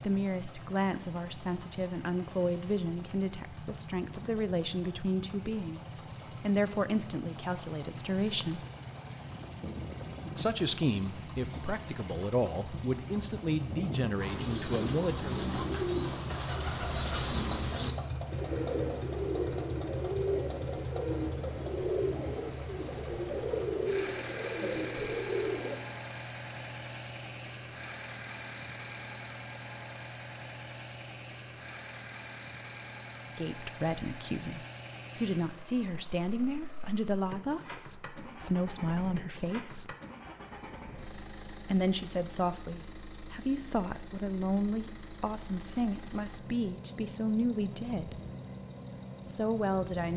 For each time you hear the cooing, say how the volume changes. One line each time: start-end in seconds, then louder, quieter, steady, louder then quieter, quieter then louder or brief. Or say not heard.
14.2-25.8 steady.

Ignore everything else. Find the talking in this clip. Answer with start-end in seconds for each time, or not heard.
0.0-8.6, 10.3-15.3, 33.4-40.0, 41.6-48.1, 49.2-50.1.